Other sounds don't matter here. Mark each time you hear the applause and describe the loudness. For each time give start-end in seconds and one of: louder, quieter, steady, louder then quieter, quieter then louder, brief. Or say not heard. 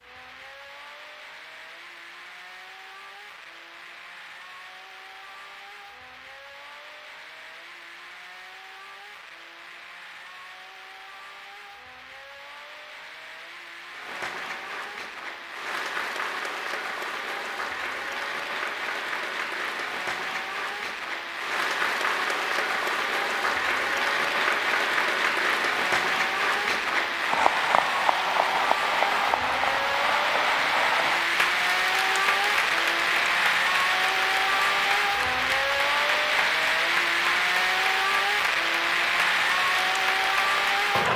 13.9-41.1 louder then quieter.